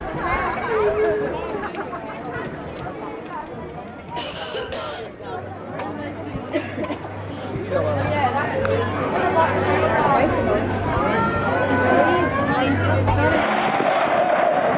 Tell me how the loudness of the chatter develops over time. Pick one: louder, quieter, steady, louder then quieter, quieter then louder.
quieter then louder.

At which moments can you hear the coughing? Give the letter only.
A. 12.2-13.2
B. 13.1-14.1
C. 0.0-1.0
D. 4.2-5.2
D.